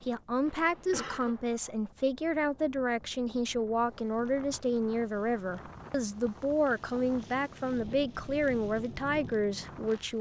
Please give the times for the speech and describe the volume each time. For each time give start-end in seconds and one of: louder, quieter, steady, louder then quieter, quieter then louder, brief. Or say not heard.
0.0-10.1 steady.